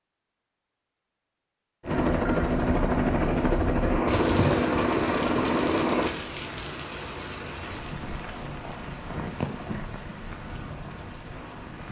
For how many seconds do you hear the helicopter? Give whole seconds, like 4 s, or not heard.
4 s.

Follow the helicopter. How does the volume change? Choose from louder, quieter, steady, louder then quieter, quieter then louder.
steady.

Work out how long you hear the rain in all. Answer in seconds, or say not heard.
8 s.